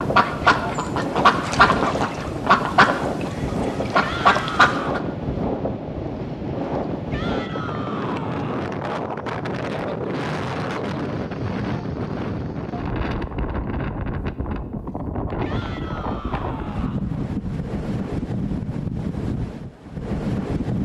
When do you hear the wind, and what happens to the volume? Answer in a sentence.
You can hear the wind from 0.0 to 20.8 s, at a steady volume.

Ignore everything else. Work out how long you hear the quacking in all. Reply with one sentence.
You can hear the quacking for 5 seconds altogether.